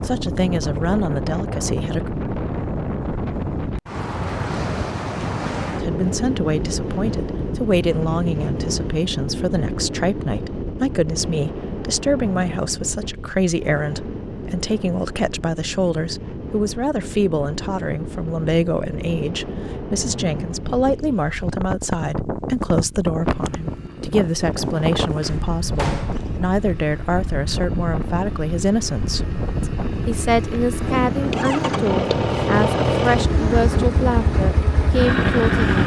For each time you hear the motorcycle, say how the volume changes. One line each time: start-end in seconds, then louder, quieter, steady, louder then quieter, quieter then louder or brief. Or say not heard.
23.2-35.8 louder.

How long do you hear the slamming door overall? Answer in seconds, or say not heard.
2 s.